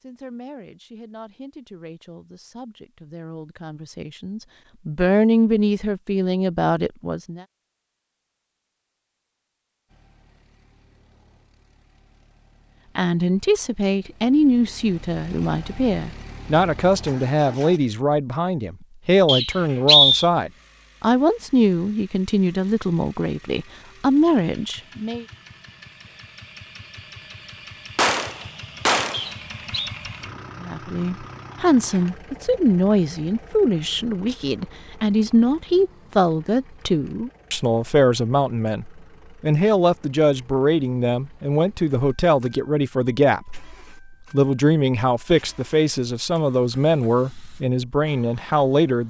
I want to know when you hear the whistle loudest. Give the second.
20 s.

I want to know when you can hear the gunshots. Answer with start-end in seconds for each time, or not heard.
27.9-29.3.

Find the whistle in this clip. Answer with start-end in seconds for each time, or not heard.
19.2-20.2, 29.1-29.9.